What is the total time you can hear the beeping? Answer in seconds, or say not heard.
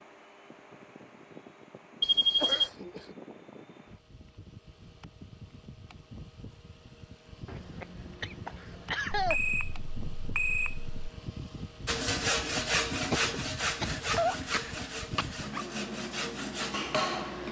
3 s.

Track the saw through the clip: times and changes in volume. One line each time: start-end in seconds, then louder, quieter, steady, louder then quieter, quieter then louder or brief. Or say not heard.
11.8-17.4 quieter then louder.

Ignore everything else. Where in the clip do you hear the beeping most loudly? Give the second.
2 s.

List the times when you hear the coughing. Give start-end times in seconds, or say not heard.
2.4-3.1, 7.5-9.4, 13.1-15.7.